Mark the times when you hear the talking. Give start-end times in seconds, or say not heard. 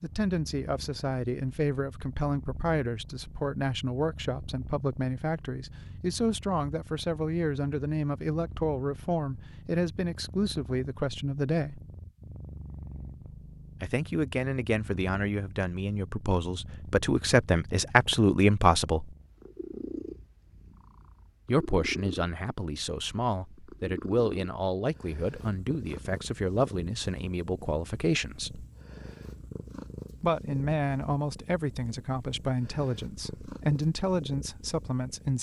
0.0-11.8, 13.8-19.1, 21.4-28.6, 30.2-35.3.